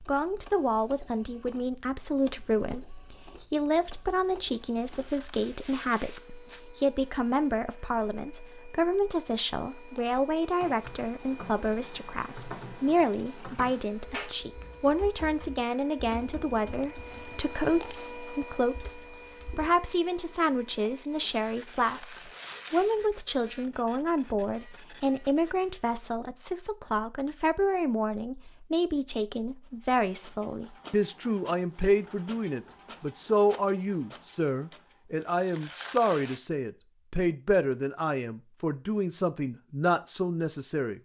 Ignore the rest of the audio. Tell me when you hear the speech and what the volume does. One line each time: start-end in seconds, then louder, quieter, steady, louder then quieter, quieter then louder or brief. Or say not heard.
0.0-40.9 steady.